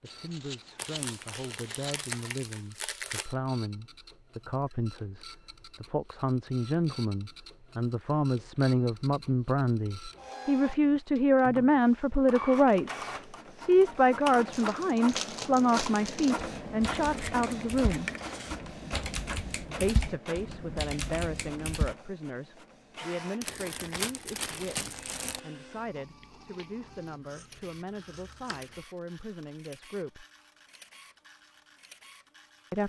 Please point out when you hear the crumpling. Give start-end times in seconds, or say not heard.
0.8-3.4, 14.5-16.4, 23.4-25.4.